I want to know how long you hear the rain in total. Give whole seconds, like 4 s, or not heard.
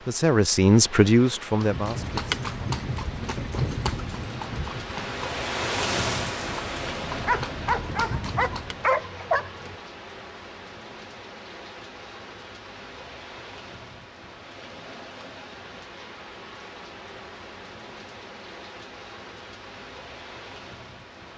21 s.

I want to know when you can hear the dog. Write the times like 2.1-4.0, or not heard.
7.2-9.8.